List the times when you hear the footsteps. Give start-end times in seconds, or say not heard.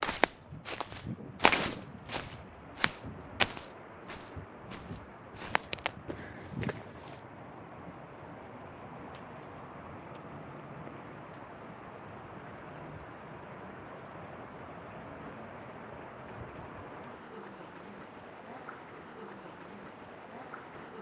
0.0-7.2.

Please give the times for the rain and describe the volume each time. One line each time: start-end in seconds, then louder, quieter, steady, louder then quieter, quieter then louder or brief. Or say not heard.
0.1-20.9 steady.